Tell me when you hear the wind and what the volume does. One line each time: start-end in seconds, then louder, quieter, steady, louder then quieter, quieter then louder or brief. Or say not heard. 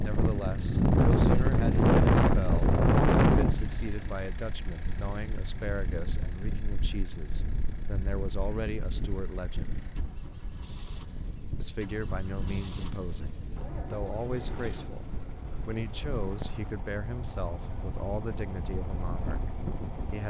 0.0-20.2 quieter.